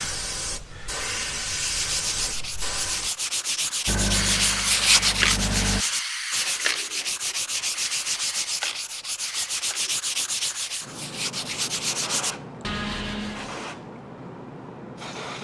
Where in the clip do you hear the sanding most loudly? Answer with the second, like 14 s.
5 s.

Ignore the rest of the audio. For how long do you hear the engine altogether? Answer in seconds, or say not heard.
2 s.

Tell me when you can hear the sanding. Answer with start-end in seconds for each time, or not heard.
1.6-13.6.